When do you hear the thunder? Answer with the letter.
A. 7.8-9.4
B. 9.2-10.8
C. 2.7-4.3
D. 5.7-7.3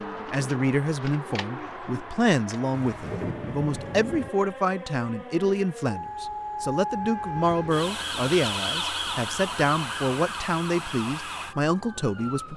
C.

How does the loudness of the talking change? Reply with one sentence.
The loudness of the talking stays about the same.